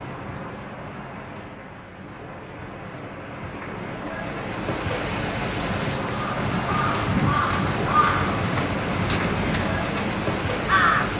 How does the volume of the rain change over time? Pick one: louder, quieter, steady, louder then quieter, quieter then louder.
louder.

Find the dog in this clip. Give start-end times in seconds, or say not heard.
not heard.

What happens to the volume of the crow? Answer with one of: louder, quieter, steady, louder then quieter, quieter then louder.
quieter.